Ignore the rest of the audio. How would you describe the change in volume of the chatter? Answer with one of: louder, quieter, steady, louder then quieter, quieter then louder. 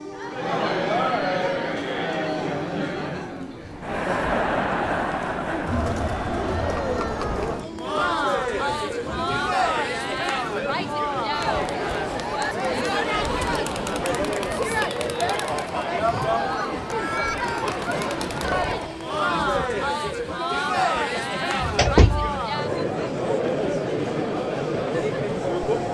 steady.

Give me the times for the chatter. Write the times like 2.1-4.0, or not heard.
0.0-25.8.